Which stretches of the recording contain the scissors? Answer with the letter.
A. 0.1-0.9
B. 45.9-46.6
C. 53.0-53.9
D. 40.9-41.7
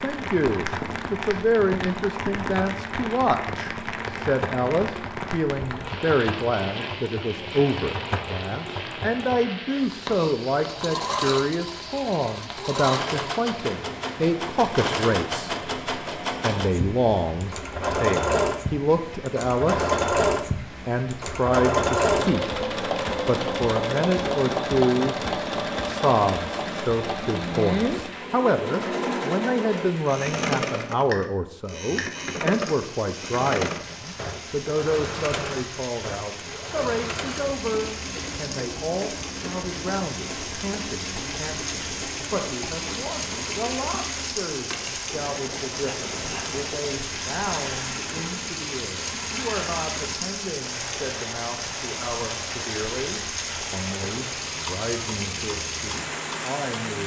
B.